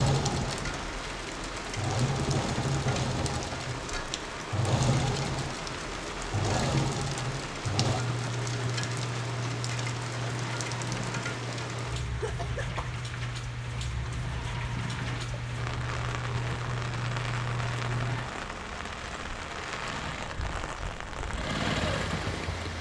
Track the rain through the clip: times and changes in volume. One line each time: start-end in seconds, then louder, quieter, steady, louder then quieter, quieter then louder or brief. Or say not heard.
0.0-22.7 steady.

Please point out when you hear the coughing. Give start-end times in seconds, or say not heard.
12.1-12.9.